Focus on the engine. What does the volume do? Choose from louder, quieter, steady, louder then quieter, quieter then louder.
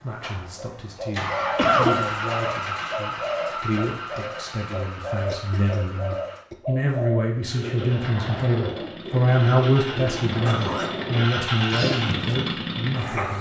quieter then louder.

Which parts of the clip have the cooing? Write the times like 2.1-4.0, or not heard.
0.6-12.4.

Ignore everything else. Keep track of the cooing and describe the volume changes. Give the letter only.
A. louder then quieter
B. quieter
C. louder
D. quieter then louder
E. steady
E.